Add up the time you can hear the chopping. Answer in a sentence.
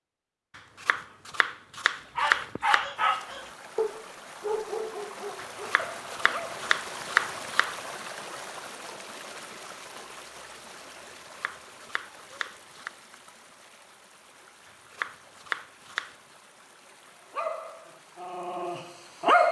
The chopping can be heard for 8 seconds in total.